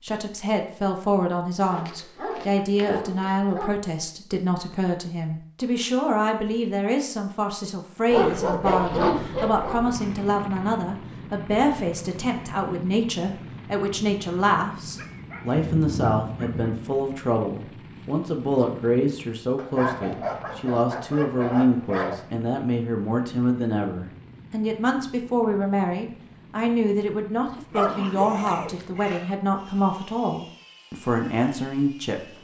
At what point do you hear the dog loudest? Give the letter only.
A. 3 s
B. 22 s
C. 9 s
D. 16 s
C.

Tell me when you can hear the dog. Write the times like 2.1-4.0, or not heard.
1.7-3.7, 8.1-9.9, 14.9-16.8, 19.6-22.2, 27.7-29.4.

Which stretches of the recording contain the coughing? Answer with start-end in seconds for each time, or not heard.
not heard.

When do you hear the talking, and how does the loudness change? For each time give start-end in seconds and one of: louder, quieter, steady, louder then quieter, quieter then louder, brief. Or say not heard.
0.0-32.3 steady.